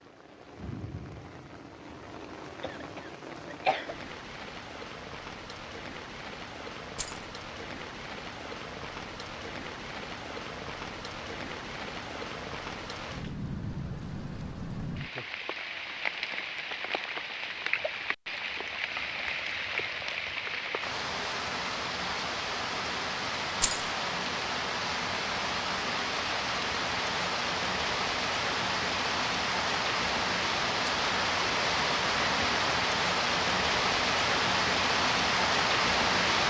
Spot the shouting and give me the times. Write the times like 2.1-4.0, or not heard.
not heard.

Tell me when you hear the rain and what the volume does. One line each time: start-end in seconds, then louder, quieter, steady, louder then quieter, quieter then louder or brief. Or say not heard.
0.0-36.4 louder.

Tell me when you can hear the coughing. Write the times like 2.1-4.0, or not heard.
2.6-4.0.